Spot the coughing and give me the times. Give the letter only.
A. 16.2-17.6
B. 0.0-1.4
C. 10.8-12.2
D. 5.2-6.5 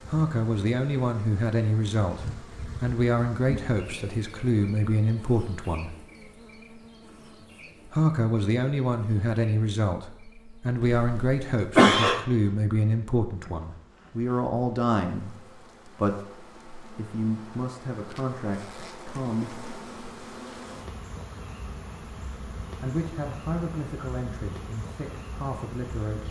C.